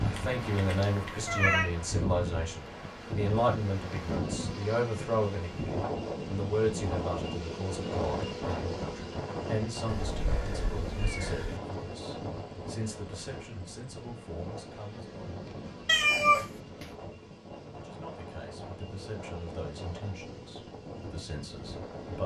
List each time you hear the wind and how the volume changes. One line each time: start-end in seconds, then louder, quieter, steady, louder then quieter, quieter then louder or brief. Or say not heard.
0.0-22.2 quieter.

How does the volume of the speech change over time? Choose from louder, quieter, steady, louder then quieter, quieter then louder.
quieter.